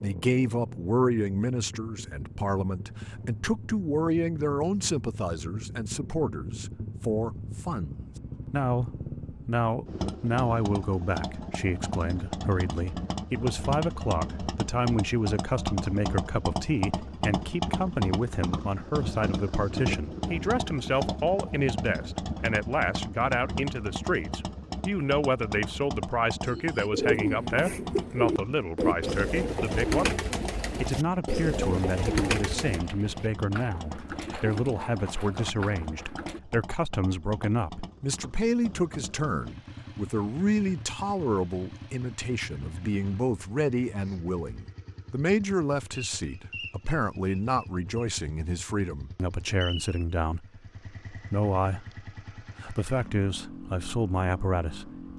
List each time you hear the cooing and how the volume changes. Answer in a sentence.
The cooing can be heard from 26.4 to 36.4 s, getting quieter.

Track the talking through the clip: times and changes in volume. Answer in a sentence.
The talking can be heard from 0.0 to 30.2 s, at a steady volume; and from 30.8 to 55.0 s, at a steady volume.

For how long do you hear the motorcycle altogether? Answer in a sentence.
You can hear the motorcycle for 55 seconds altogether.